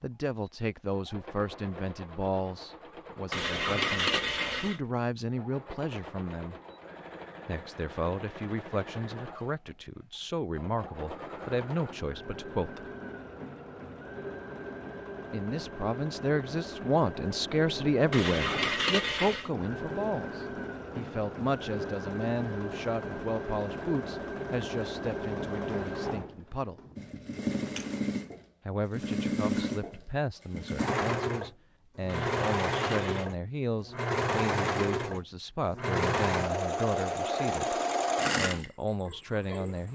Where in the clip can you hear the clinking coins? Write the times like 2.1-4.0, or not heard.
3.3-4.8, 18.1-19.5, 32.0-33.3.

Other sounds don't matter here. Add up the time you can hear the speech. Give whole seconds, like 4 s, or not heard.
35 s.